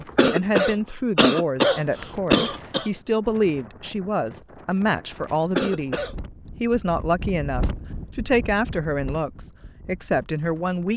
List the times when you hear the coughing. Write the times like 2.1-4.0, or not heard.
0.1-2.9, 5.5-6.2.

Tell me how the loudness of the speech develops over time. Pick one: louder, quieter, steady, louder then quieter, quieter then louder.
steady.